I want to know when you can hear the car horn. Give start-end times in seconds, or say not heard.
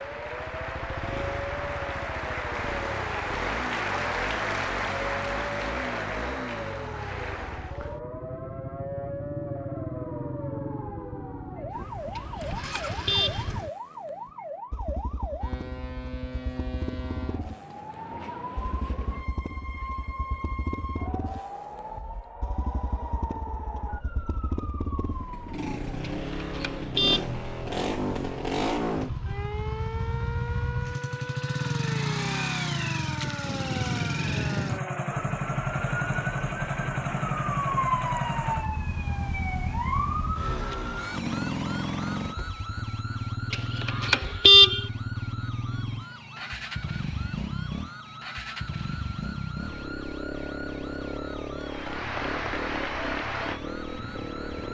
12.2-13.5, 26.0-27.2, 43.5-44.9.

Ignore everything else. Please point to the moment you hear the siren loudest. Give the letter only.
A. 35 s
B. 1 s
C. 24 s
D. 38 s
D.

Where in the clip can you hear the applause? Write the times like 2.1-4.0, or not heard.
0.0-7.8, 51.6-54.6.